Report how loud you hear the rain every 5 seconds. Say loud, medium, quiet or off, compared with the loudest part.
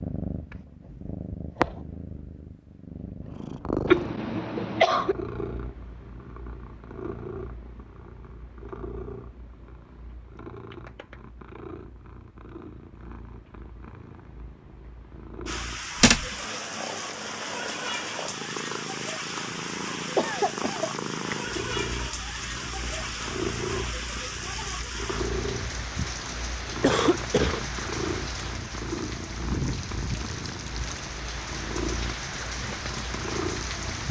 off, off, off, loud, loud, loud, loud.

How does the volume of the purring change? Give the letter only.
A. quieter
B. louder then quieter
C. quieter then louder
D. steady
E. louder
C.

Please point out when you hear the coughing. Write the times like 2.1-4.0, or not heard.
3.9-5.2, 20.1-20.9, 26.8-27.6.